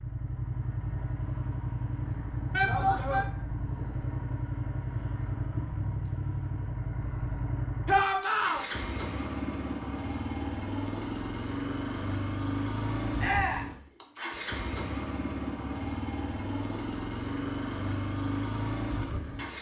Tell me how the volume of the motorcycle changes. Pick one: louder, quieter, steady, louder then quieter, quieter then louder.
steady.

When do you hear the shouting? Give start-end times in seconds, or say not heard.
2.5-3.2, 7.8-8.7, 13.2-13.7.